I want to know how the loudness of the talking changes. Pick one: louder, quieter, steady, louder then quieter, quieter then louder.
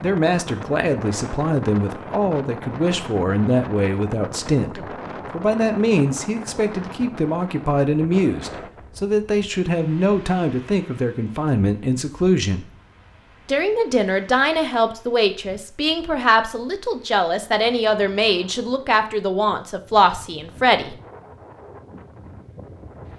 steady.